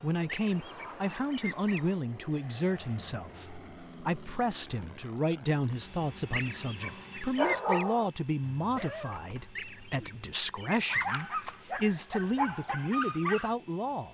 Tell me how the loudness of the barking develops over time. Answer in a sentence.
The volume of the barking goes down, then up.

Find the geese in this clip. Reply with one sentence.
You can hear the geese from 0.2 to 1.8 s, from 6.3 to 7.8 s and from 9.6 to 10.8 s.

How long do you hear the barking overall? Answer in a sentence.
You can hear the barking for 7 seconds altogether.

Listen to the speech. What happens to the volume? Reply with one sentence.
The loudness of the speech stays about the same.